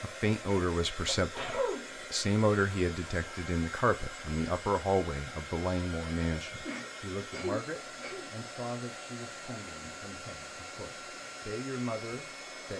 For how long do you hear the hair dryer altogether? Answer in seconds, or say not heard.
13 s.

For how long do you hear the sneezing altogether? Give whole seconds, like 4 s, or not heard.
2 s.